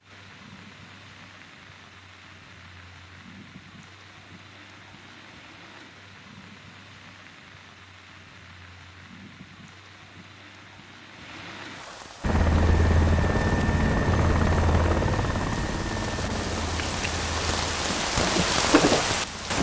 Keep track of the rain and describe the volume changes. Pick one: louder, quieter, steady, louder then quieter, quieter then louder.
louder.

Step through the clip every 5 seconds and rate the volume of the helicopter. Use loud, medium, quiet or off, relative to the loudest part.
off, off, loud, medium.